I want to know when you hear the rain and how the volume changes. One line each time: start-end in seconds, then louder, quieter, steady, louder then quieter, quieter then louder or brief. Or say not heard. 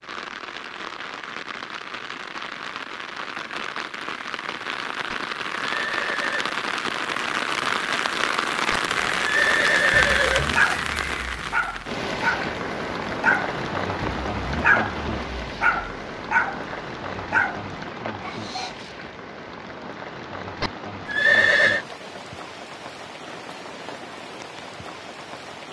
0.0-25.6 louder then quieter.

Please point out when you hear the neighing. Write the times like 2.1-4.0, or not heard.
5.1-6.5, 8.7-10.6, 20.6-21.9.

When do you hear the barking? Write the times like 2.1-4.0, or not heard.
9.9-18.9.